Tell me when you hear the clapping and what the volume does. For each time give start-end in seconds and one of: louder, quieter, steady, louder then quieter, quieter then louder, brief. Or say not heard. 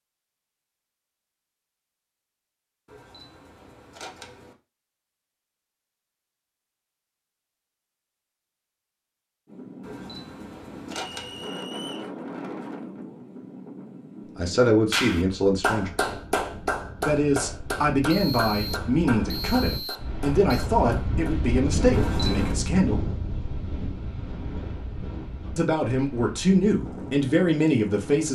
14.9-21.5 quieter.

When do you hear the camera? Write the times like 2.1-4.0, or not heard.
2.9-4.5, 9.8-11.5, 21.9-22.6.